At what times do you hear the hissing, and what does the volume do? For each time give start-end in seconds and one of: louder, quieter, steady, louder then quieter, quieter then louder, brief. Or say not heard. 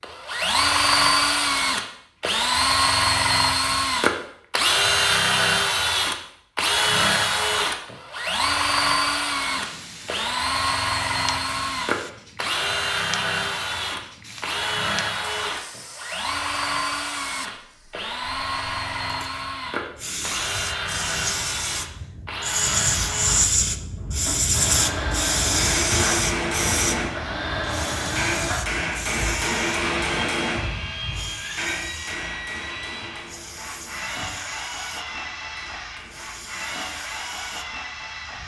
9.4-38.4 louder then quieter.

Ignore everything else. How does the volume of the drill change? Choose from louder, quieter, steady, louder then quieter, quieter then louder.
quieter.